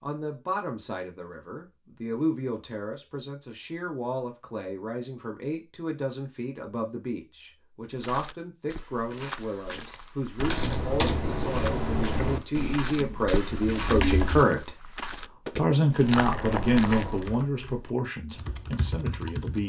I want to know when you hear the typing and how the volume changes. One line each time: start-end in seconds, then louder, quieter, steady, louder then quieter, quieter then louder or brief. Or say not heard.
10.3-14.7 quieter then louder
17.1-19.6 brief.